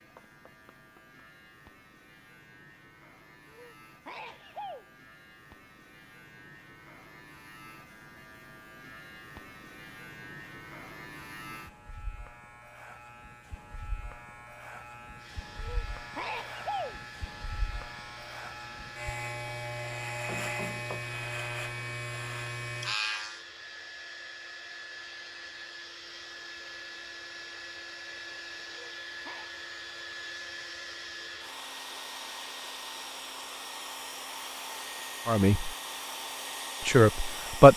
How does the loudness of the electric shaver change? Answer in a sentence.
The loudness of the electric shaver goes up.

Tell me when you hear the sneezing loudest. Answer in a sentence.
The loudest moment of the sneezing is at 17 seconds.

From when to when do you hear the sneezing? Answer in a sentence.
The sneezing can be heard from 3.5 to 4.9 s, from 15.6 to 17.0 s and from 28.6 to 29.5 s.